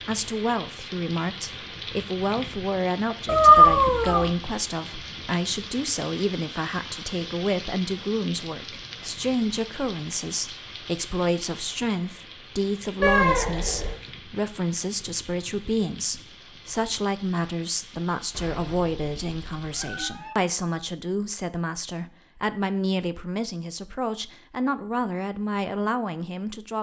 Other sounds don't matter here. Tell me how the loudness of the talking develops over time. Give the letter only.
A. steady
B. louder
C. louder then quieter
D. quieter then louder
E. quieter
A.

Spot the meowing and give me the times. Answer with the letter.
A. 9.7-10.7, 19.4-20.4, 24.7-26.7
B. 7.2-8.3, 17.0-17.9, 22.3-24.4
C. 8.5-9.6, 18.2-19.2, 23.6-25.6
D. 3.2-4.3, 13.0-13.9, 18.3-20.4
D.